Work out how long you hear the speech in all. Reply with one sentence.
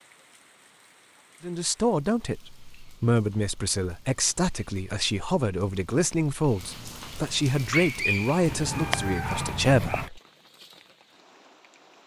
The speech can be heard for 9 seconds in total.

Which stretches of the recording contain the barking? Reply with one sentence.
You can hear the barking from 7.5 to 10.1 s.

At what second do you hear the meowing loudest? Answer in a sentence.
The loudest moment of the meowing is at 9 seconds.